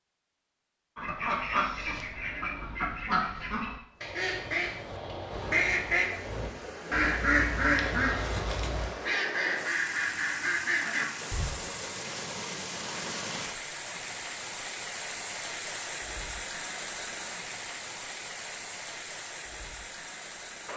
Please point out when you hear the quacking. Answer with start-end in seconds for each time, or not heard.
0.9-11.4.